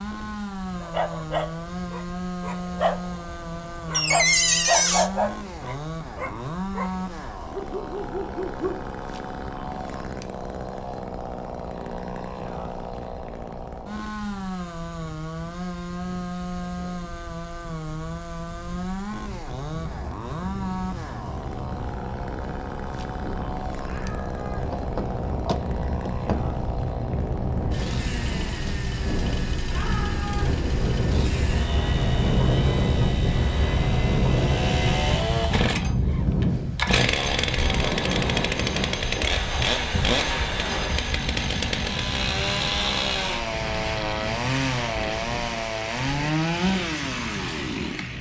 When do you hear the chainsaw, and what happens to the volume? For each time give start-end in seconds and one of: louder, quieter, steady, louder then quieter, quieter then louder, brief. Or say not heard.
0.0-48.1 louder.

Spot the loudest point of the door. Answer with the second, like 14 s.
4 s.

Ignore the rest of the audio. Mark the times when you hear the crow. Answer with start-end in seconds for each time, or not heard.
not heard.